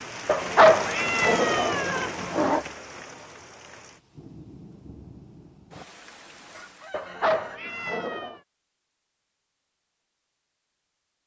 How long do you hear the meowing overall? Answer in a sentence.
The meowing can be heard for 4 seconds in total.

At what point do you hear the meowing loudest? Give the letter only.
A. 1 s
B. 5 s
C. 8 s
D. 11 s
A.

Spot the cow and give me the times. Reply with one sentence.
The cow can't be heard in this clip.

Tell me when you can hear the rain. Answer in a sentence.
The rain can be heard from 0.0 to 7.2 s.